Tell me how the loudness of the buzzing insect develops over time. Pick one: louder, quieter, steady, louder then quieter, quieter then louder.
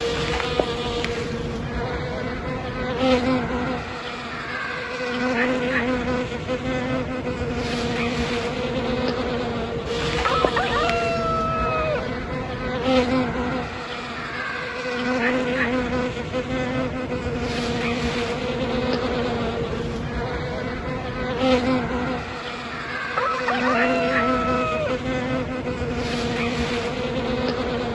steady.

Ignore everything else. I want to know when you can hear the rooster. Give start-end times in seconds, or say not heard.
10.2-12.1, 23.1-25.1.